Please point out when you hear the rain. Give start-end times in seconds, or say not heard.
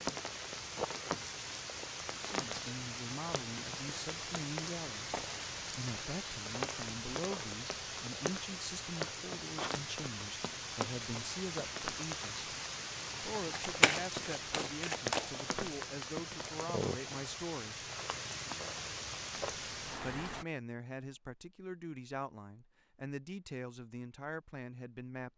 0.0-20.4.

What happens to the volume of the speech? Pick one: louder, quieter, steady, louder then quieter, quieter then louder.
steady.